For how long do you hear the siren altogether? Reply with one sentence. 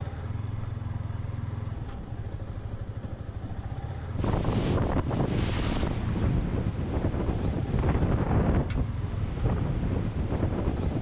You can't hear the siren here.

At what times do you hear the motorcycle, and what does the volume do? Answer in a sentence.
You can hear the motorcycle from 0.0 to 10.9 s, at a steady volume.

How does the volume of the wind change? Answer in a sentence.
The loudness of the wind stays about the same.